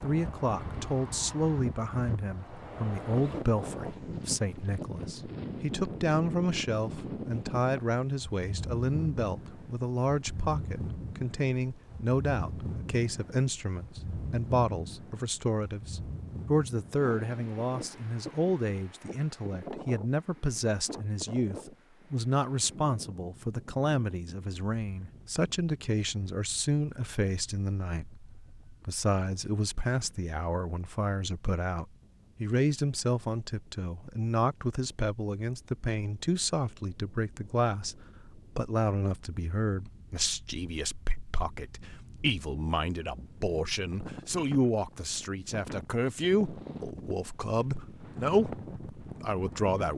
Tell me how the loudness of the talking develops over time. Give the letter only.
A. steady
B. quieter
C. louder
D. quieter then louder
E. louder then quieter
A.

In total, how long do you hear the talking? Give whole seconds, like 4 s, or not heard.
50 s.